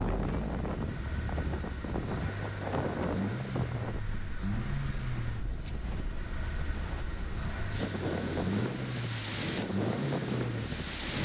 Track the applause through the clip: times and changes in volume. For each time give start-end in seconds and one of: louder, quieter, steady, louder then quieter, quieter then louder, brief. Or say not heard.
not heard.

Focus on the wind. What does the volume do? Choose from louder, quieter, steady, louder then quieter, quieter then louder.
quieter then louder.